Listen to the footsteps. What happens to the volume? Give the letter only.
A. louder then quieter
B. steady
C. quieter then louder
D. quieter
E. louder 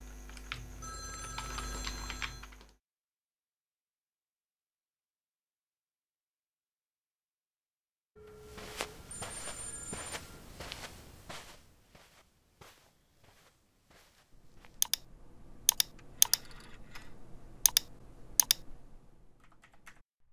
D.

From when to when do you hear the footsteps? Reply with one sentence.
You can hear the footsteps from 8.3 to 14.9 s.